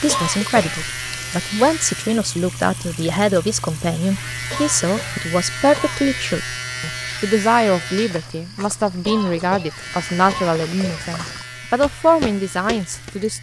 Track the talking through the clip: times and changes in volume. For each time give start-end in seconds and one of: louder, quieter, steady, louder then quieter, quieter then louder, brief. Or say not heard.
0.0-13.3 steady.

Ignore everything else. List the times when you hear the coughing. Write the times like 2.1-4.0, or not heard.
0.1-0.9, 4.5-6.1, 9.1-11.1.